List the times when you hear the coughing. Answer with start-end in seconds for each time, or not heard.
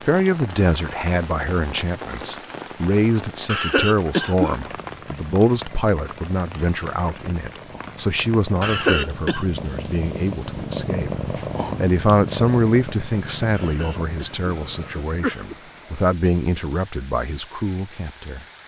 3.5-4.6, 8.6-9.4, 13.5-15.6.